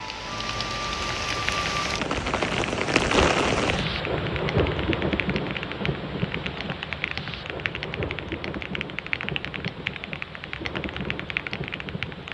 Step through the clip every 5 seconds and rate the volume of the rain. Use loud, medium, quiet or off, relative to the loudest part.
loud, medium, medium.